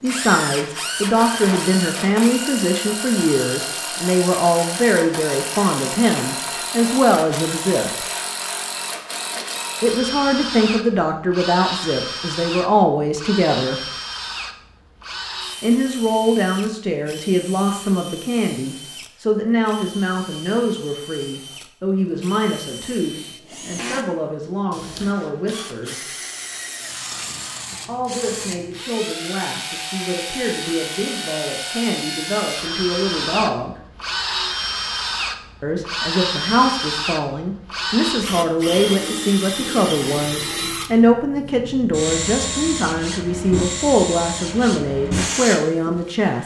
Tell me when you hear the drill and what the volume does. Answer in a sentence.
The drill can be heard from 0.0 to 46.3 s, getting quieter then louder.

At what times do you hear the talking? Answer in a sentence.
You can hear the talking from 0.0 to 8.1 s, from 9.8 to 13.8 s, from 15.6 to 26.0 s, from 27.9 to 33.8 s and from 35.6 to 46.4 s.